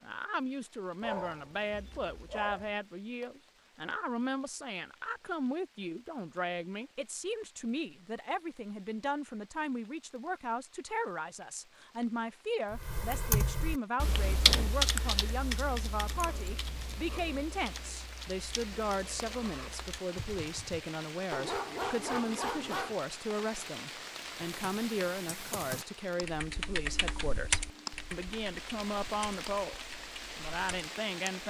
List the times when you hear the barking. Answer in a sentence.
The barking can be heard from 1.0 to 2.7 s and from 21.3 to 23.0 s.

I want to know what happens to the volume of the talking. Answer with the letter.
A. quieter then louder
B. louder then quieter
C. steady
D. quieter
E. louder
C.